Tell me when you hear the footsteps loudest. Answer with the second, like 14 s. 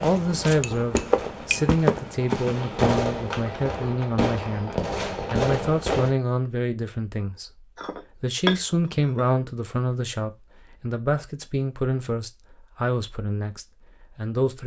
2 s.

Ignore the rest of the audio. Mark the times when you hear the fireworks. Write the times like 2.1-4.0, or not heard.
0.0-6.1.